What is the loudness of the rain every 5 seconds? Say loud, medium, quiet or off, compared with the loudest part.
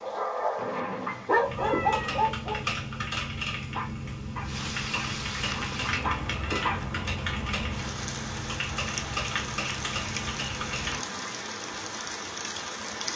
medium, loud, loud.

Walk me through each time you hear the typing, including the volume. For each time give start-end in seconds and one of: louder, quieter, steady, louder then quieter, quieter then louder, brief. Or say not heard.
1.4-11.1 steady.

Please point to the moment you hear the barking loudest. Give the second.
1 s.